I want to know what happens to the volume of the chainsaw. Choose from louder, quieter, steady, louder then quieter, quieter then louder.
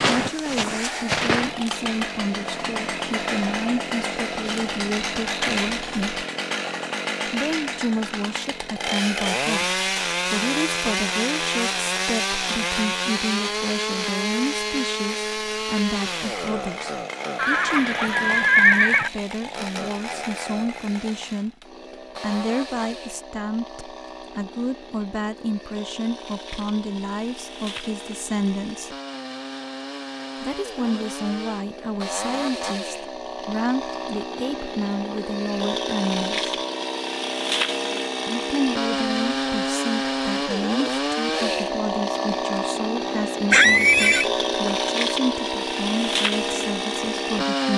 quieter then louder.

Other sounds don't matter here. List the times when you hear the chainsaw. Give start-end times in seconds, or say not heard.
0.0-47.7.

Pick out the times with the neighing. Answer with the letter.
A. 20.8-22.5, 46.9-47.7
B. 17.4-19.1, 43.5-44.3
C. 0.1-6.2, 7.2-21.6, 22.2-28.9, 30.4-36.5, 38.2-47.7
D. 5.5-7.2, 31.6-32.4
B.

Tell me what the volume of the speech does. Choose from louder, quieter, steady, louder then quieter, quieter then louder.
steady.